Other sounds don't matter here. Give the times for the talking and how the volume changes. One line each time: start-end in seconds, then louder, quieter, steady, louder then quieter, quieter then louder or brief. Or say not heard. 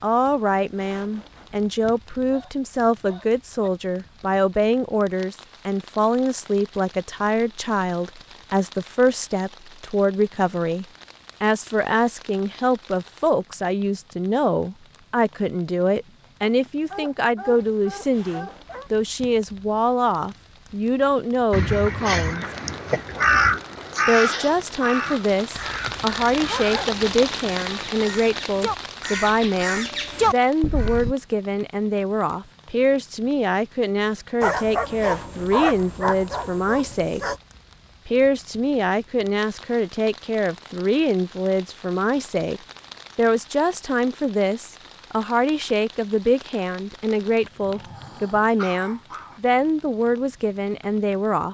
0.0-22.4 steady
24.1-37.2 steady
38.0-51.5 steady.